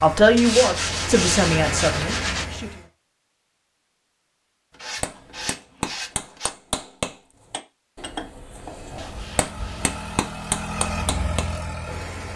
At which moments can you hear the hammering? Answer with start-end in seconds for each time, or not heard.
5.0-11.5.